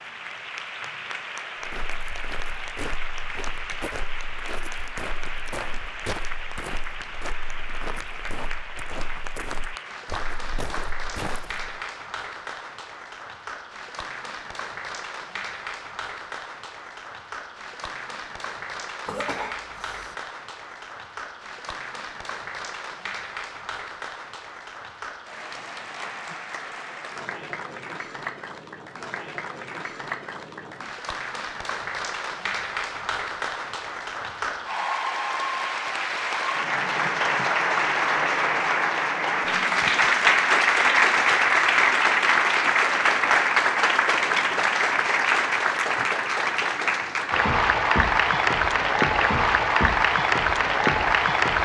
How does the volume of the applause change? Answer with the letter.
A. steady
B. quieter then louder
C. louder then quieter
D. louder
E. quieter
D.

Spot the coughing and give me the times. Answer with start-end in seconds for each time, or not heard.
19.1-20.1.